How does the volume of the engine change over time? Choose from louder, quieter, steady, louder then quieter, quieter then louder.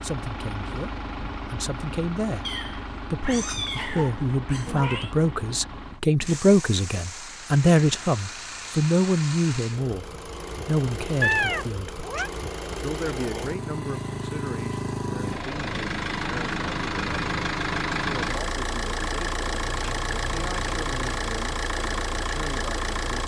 louder.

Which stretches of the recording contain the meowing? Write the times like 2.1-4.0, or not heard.
2.4-5.2, 11.2-12.3, 19.6-21.2.